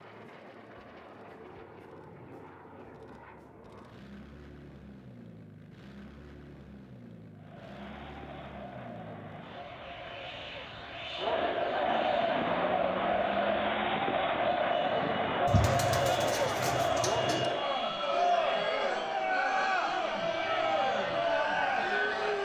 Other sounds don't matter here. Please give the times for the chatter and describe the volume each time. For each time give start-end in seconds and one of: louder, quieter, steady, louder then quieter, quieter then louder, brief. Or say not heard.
7.3-22.4 louder.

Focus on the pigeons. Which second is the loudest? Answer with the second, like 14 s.
16 s.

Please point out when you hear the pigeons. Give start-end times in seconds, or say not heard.
15.4-17.5.